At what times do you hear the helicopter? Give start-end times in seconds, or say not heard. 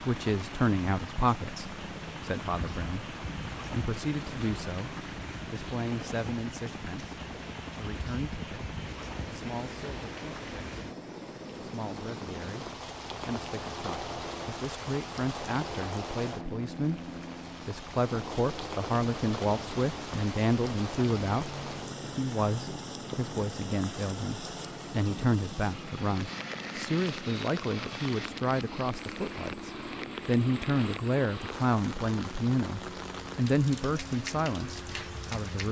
0.0-35.6.